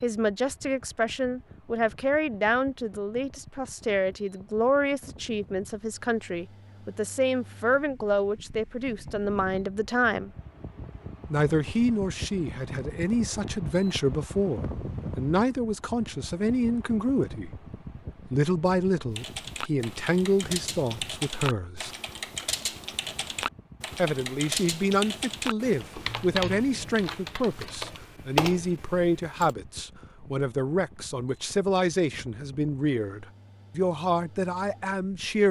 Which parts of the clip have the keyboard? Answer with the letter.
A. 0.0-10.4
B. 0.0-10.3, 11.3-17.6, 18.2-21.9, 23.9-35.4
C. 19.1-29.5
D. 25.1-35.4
C.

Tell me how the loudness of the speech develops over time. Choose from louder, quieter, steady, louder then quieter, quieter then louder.
steady.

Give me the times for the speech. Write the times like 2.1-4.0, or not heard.
0.0-10.3, 11.3-17.6, 18.2-21.9, 23.9-35.4.